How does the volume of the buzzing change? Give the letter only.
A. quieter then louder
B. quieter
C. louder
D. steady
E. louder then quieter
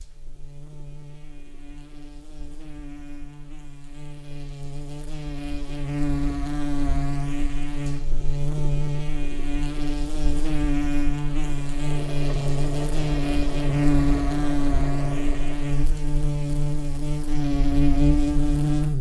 C.